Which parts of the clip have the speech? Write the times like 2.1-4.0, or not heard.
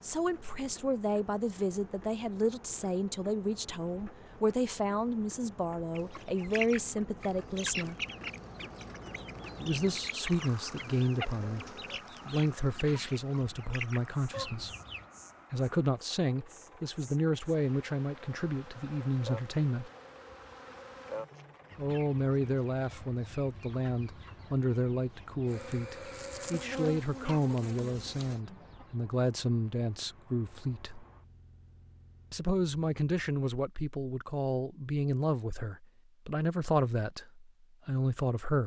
0.0-8.0, 9.6-11.7, 12.2-14.7, 15.5-19.9, 21.8-31.1, 32.3-38.6.